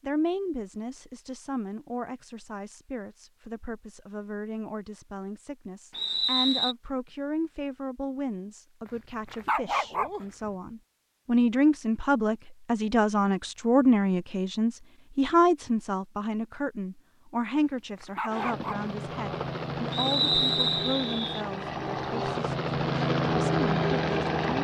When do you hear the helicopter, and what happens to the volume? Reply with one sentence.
You can hear the helicopter from 18.2 to 24.5 s, getting louder.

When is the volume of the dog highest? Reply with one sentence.
The loudest moment of the dog is at 10 seconds.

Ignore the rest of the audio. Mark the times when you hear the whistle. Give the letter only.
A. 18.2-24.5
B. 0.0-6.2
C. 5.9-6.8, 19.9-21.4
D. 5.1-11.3
C.